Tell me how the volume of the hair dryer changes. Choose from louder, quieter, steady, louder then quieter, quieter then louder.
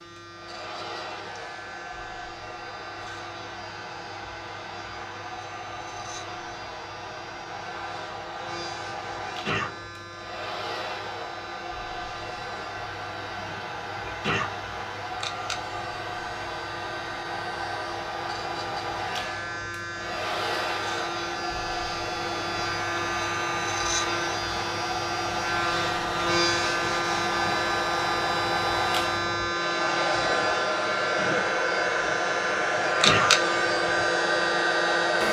louder.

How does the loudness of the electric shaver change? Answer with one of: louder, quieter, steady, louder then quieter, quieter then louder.
louder.